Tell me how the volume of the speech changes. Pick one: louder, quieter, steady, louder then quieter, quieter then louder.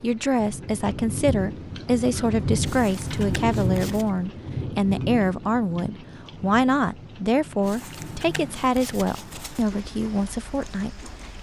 steady.